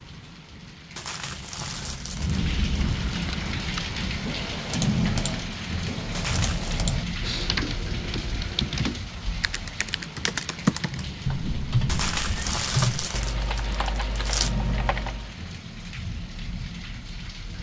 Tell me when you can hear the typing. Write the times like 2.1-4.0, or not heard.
3.0-15.3.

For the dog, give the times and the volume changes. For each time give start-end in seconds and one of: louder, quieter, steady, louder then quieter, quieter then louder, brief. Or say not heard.
not heard.